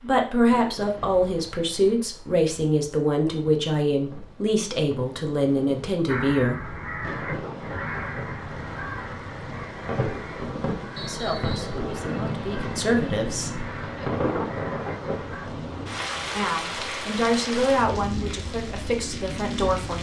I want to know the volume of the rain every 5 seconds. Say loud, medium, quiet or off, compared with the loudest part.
quiet, medium, loud, loud.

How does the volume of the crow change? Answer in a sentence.
The volume of the crow goes down.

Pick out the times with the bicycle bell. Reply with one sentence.
You can't hear the bicycle bell here.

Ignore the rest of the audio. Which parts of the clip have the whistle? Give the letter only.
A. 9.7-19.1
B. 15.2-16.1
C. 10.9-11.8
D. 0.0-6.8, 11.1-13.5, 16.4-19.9
C.